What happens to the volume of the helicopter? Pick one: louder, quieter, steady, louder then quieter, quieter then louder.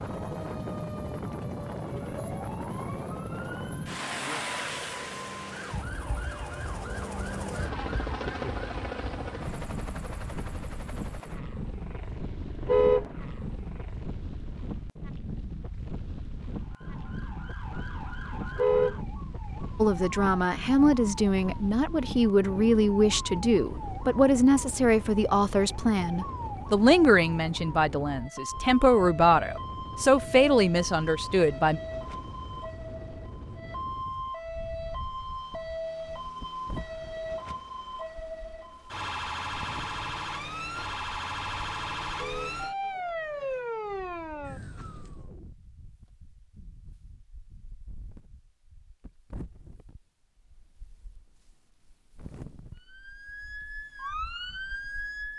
louder then quieter.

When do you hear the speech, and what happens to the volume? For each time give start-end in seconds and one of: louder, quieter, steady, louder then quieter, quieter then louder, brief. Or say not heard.
19.8-31.8 steady.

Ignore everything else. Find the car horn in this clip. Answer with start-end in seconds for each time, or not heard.
12.6-13.1, 18.5-19.0, 42.1-42.6.